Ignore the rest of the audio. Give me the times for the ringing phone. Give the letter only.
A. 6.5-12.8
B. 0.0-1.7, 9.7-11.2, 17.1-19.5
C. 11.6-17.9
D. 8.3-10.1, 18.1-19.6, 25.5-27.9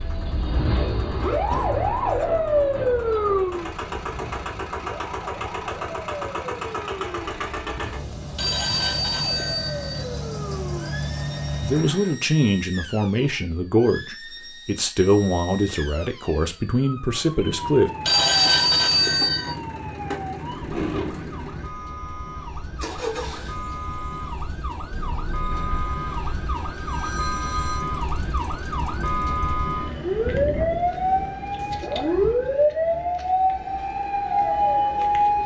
D.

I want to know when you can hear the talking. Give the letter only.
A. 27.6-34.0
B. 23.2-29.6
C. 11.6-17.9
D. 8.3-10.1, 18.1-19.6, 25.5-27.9
C.